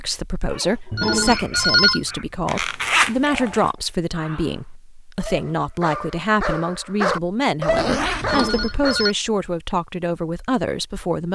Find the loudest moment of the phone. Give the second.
2 s.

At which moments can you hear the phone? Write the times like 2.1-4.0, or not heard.
0.9-2.0, 8.2-9.2.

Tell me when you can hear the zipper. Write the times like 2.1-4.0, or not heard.
2.5-3.7, 7.7-8.8.